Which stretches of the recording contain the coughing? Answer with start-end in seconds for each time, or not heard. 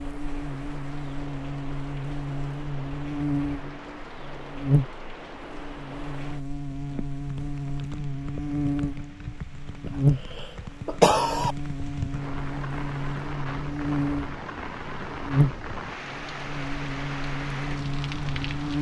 9.8-11.6.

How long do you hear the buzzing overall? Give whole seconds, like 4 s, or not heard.
19 s.